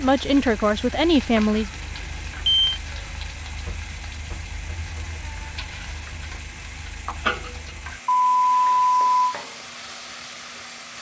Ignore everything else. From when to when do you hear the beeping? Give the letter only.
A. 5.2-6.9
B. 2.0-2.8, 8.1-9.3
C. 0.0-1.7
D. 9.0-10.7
B.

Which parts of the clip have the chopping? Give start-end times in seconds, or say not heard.
not heard.